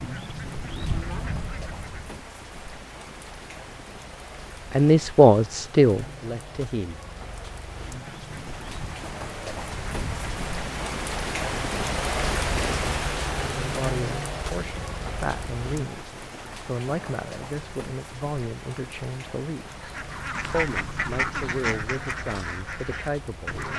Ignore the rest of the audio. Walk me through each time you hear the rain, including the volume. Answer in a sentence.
The rain can be heard from 0.0 to 23.7 s, getting louder then quieter.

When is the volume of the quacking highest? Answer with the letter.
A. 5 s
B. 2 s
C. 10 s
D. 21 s
D.